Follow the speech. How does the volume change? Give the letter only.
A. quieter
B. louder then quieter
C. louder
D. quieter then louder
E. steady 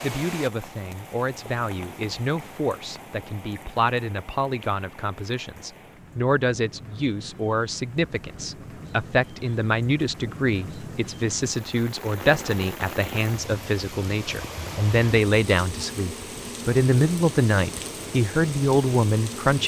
C.